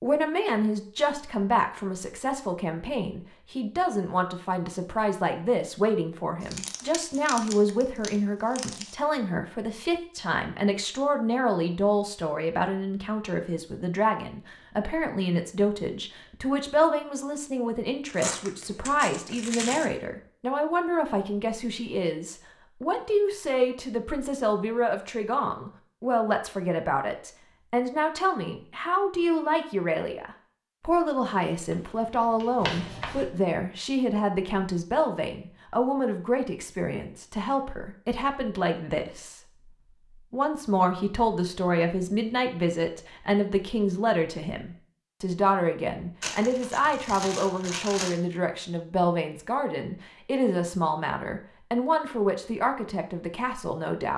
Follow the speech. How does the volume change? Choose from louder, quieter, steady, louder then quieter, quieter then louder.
steady.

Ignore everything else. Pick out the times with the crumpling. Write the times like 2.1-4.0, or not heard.
6.4-8.9, 18.1-19.9, 46.2-48.2.